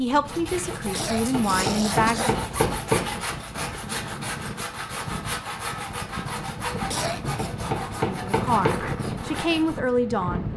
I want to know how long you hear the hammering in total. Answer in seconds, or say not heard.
4 s.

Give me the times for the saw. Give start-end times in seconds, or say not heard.
0.1-9.8.